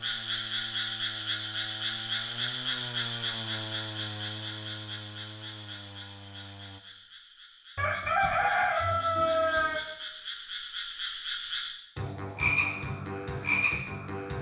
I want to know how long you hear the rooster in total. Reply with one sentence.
You can hear the rooster for 2 seconds altogether.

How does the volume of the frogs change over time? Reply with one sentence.
The loudness of the frogs goes down, then up.